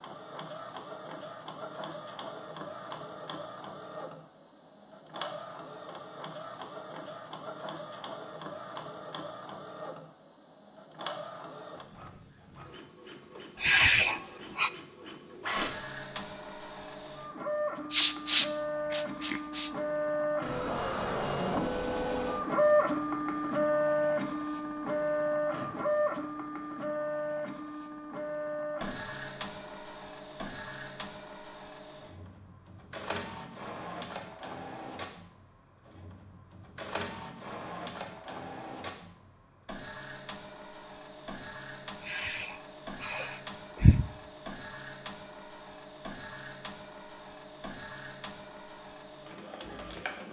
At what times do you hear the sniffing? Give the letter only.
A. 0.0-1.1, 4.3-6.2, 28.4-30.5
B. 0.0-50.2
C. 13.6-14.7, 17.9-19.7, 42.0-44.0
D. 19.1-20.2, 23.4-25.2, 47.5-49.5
C.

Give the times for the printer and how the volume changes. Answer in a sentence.
The printer can be heard from 0.0 to 50.2 s, getting louder then quieter.